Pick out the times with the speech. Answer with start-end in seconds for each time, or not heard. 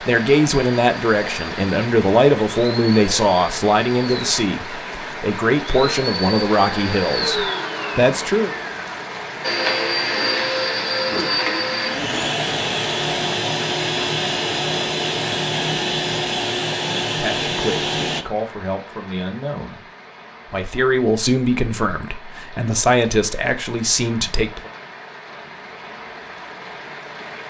0.0-8.6, 17.1-19.8, 20.4-24.7.